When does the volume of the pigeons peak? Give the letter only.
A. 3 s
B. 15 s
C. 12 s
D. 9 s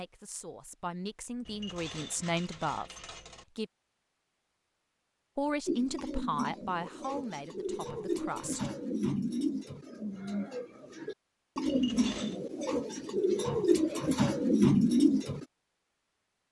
B.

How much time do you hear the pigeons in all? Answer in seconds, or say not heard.
10 s.